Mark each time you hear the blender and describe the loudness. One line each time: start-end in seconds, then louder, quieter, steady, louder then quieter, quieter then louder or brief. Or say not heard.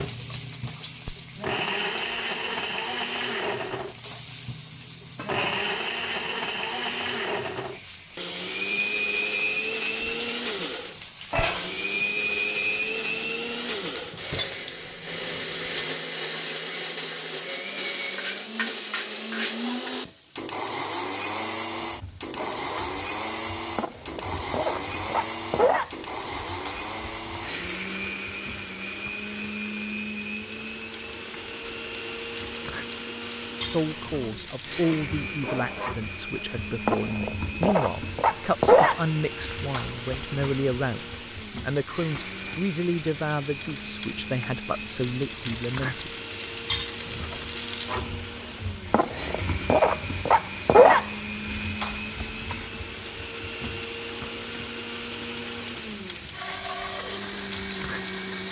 0.0-58.4 quieter.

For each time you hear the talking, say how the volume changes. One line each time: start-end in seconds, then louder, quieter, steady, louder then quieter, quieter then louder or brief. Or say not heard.
33.7-46.1 steady.